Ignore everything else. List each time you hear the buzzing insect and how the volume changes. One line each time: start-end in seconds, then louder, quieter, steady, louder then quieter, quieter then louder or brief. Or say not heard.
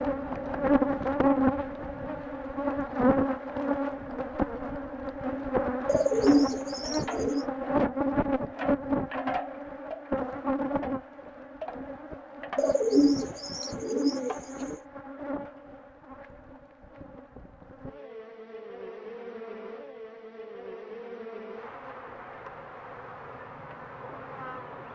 0.0-24.8 quieter.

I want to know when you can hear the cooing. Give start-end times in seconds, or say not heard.
5.8-7.5, 12.6-14.8.